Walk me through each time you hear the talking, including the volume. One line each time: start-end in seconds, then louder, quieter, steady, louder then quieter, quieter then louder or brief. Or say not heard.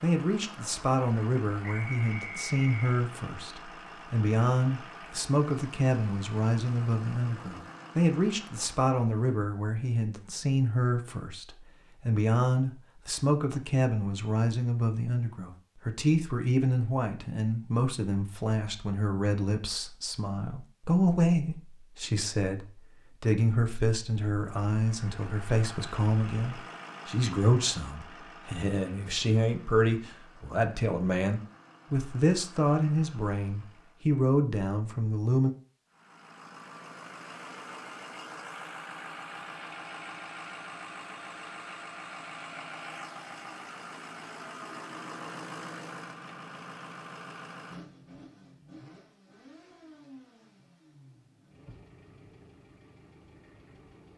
0.0-35.5 steady.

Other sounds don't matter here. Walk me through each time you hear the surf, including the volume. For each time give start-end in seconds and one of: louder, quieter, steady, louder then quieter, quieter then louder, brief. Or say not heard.
not heard.